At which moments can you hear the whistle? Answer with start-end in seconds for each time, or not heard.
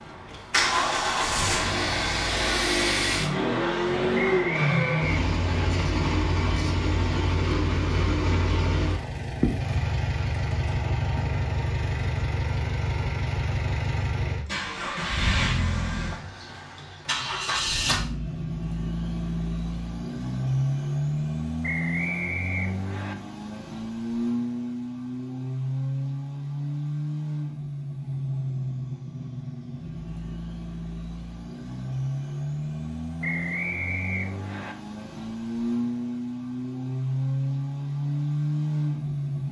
4.2-5.7, 21.6-23.1, 33.2-34.8.